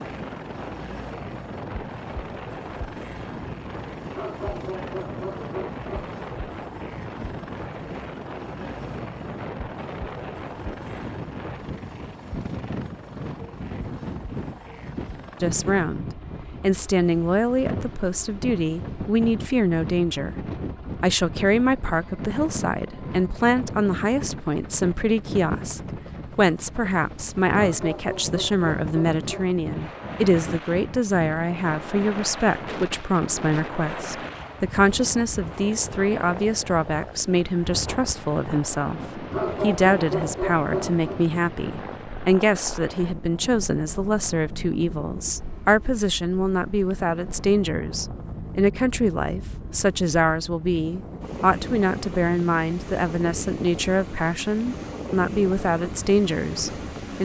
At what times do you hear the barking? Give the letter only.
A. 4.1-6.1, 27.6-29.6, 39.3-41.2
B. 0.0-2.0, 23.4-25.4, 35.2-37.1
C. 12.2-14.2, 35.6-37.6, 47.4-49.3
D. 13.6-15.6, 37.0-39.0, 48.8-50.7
A.